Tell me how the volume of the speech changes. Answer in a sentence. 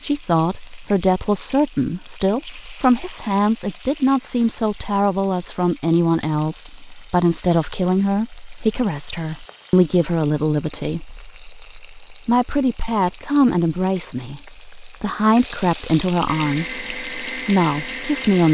The volume of the speech stays about the same.